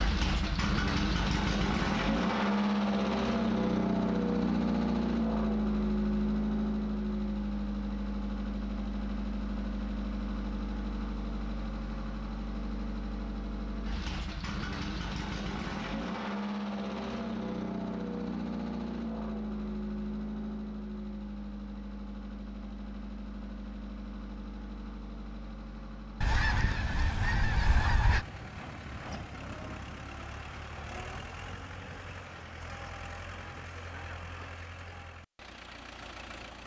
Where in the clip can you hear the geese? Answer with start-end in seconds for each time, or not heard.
26.2-28.2.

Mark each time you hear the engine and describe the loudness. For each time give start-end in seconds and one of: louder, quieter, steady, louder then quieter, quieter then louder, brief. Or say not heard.
0.0-36.6 quieter.